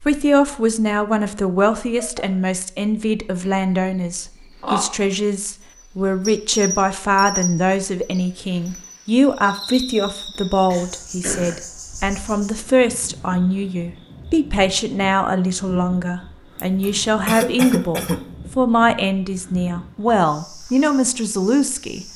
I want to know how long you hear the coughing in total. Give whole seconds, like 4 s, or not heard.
4 s.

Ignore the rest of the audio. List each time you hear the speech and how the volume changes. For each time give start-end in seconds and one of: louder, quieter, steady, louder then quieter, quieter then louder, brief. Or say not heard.
0.0-22.1 steady.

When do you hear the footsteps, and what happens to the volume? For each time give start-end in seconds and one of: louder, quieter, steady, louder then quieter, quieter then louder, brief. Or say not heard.
not heard.